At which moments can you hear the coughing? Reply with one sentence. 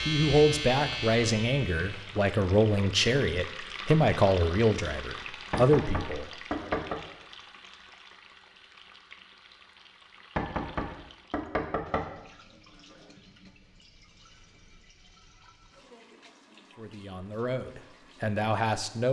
The coughing can't be heard in this clip.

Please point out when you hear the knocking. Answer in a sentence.
You can hear the knocking from 5.5 to 7.0 s and from 10.3 to 12.1 s.